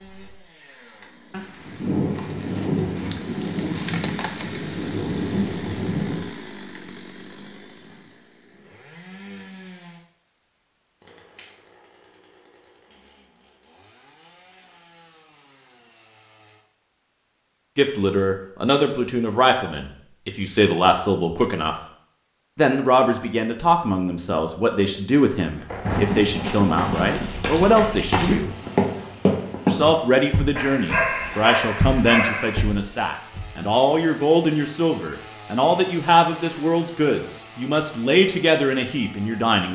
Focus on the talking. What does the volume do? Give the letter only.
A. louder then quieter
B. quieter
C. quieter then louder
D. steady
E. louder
D.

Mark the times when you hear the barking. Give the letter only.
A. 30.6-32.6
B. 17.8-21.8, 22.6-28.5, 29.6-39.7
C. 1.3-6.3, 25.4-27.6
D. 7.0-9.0
A.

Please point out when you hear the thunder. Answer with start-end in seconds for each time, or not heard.
1.3-6.3, 25.4-27.6.